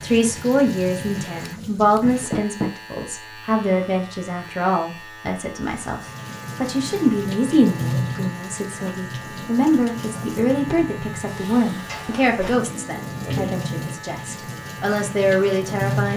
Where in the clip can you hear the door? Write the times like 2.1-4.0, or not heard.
2.0-2.7, 11.2-12.5.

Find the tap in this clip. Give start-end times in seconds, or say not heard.
0.0-2.3, 5.6-16.1.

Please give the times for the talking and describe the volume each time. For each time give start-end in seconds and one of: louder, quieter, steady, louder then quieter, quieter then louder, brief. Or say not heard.
0.0-16.1 steady.